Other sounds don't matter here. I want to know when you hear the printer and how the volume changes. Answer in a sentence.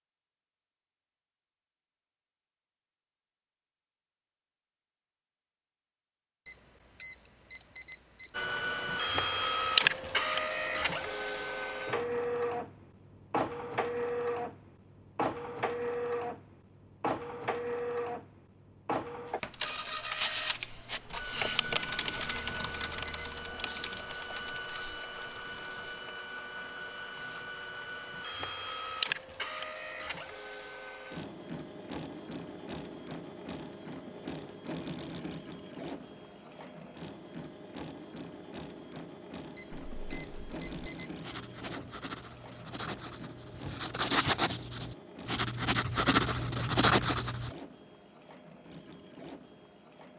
The printer can be heard from 8.3 to 50.1 s, getting quieter.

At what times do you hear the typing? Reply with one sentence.
You can hear the typing from 19.5 to 26.1 s.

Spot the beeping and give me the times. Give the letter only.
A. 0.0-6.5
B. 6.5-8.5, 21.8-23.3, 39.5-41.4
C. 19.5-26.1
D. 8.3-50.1
B.